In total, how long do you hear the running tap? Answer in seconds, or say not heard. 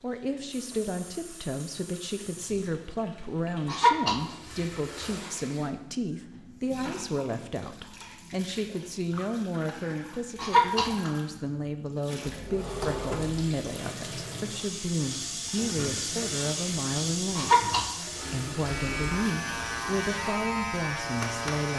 22 s.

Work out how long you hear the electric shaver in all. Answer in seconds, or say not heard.
3 s.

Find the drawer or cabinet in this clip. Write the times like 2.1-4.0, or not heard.
12.2-13.5.